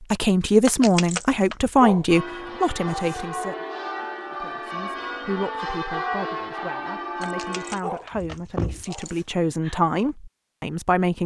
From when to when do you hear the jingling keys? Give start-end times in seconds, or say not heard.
0.7-1.7, 7.2-9.2.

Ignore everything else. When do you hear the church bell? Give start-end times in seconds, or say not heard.
2.0-7.8.